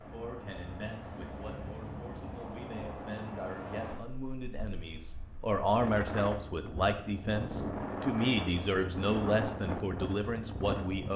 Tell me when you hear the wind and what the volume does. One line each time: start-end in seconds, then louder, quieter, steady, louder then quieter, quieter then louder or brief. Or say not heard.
0.0-11.1 louder.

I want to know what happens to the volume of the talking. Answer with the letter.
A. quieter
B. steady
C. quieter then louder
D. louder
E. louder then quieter
D.